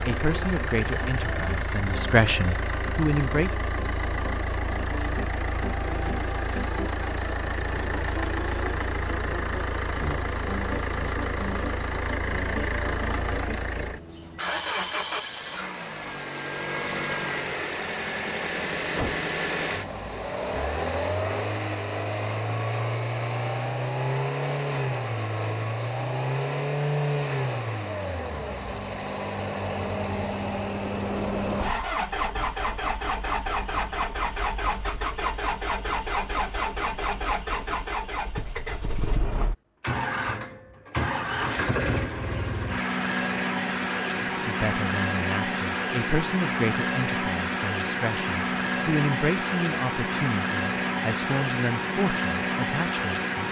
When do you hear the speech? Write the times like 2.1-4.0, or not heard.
0.1-3.5, 44.2-53.4.